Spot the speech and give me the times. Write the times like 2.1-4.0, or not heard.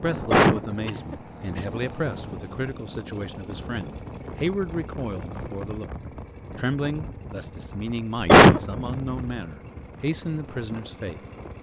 0.0-5.9, 6.5-11.2.